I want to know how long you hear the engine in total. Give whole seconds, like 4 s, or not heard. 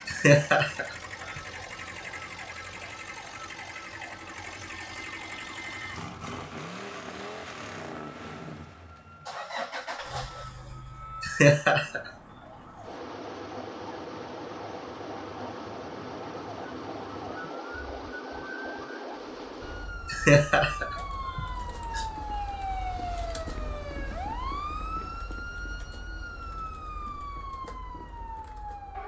20 s.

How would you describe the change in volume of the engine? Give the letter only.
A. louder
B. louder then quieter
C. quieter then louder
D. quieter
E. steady
E.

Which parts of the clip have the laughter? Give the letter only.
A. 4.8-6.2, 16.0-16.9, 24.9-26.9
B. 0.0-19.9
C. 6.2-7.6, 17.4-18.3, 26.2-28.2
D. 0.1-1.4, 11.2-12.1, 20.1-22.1
D.